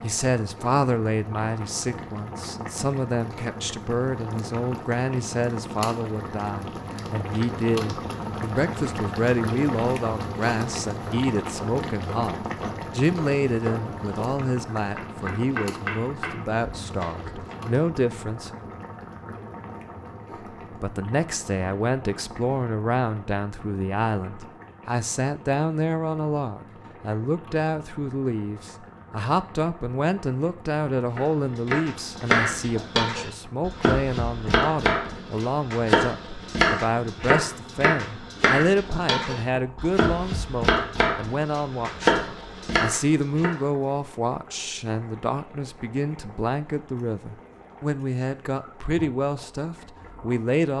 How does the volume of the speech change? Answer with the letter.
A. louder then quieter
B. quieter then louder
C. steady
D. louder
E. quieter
C.